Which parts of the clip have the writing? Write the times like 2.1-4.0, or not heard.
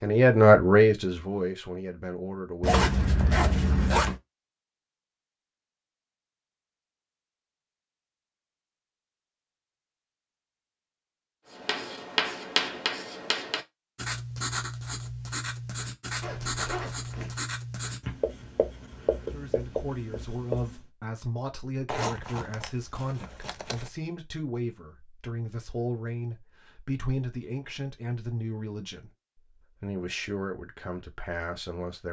11.5-20.8.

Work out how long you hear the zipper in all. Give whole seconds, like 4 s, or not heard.
5 s.